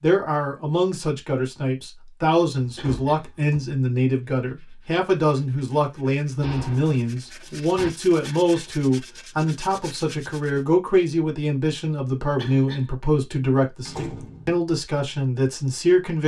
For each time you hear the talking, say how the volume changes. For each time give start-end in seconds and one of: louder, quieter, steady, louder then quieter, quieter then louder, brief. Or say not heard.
0.0-16.2 steady.